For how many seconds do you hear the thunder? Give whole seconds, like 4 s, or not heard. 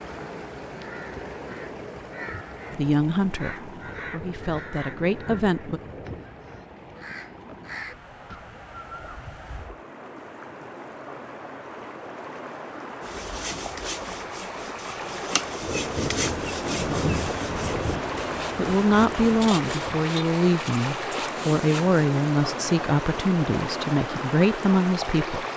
7 s.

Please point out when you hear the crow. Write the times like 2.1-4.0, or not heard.
0.8-9.8.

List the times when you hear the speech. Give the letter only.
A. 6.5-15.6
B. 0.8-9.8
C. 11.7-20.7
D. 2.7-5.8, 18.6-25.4
D.